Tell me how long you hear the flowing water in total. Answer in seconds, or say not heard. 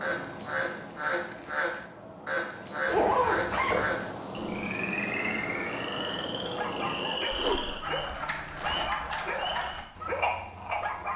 7 s.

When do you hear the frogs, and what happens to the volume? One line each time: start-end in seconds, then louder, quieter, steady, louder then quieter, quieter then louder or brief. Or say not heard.
0.0-11.1 steady.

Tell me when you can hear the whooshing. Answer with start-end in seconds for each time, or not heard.
7.3-7.8.